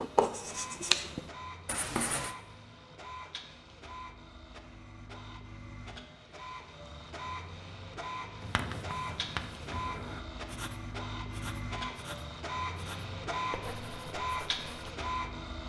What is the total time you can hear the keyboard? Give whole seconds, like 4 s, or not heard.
not heard.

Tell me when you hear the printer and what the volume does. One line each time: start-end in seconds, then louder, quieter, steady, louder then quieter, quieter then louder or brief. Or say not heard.
0.0-15.6 louder.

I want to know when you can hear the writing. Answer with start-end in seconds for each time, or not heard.
0.0-2.4, 8.4-14.9.